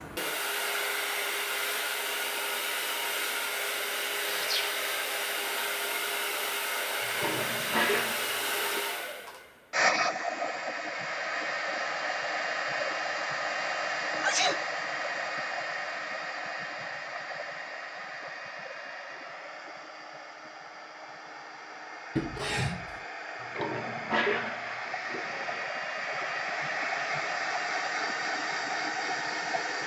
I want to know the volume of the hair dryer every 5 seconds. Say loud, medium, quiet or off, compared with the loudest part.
loud, loud, loud, medium, medium, loud.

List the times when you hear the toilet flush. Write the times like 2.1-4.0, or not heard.
7.2-8.8, 23.5-25.6.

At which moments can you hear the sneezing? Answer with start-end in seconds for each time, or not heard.
4.2-4.8, 14.2-14.6, 22.1-23.0.